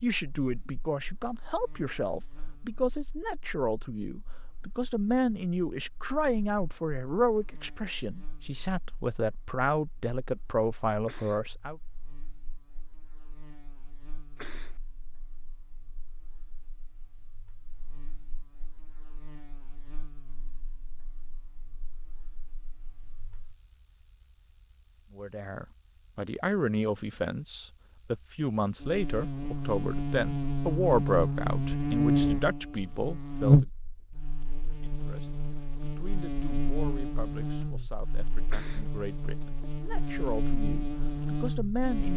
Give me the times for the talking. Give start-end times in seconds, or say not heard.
0.0-11.8, 25.1-33.6, 34.8-42.1.